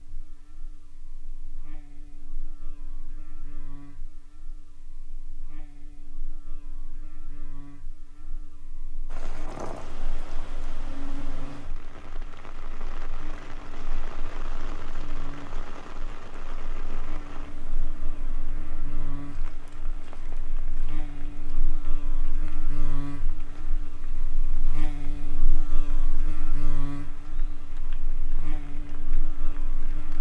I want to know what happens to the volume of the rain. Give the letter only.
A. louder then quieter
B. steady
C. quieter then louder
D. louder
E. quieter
E.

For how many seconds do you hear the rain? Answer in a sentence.
You can hear the rain for 21 seconds altogether.